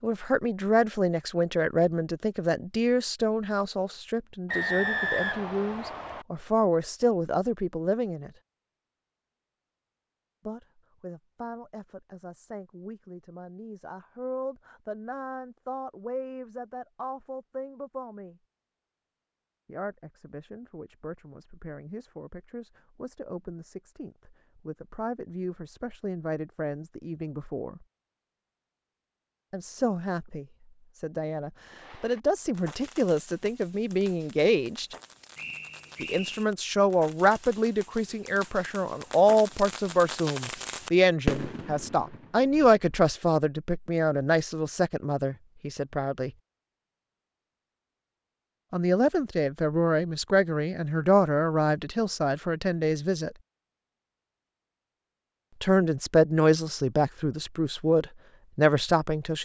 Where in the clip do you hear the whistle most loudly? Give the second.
5 s.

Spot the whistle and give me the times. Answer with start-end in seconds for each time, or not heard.
4.5-6.2, 35.4-36.5.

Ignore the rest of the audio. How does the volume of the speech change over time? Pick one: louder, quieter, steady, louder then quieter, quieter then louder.
quieter then louder.